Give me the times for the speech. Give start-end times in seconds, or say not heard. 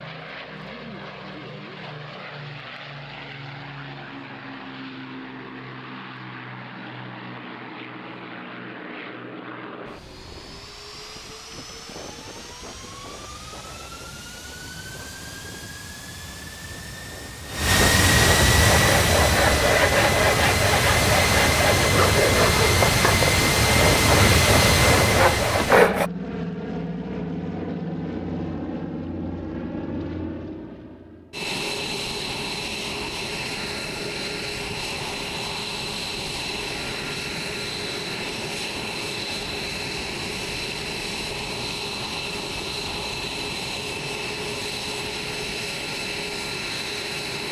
not heard.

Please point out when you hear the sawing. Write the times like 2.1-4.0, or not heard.
18.6-26.1.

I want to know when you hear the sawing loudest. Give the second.
26 s.